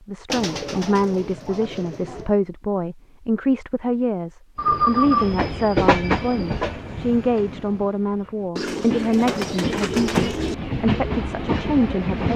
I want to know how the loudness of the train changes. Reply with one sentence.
The loudness of the train goes down, then up.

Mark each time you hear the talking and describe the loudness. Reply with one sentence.
The talking can be heard from 0.1 to 12.3 s, at a steady volume.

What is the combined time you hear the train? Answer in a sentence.
You can hear the train for 8 seconds altogether.